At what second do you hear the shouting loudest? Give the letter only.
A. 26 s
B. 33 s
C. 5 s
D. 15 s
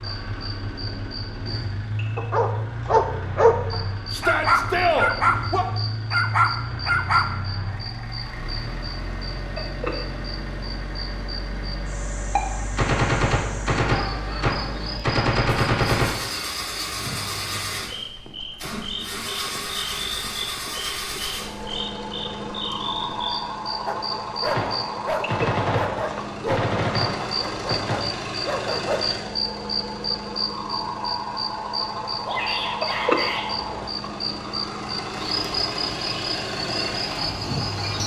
C.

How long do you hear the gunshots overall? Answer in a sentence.
The gunshots can be heard for 7 seconds in total.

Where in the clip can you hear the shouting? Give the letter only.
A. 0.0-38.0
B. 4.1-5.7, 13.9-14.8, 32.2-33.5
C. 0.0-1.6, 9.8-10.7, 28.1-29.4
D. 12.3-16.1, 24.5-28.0
B.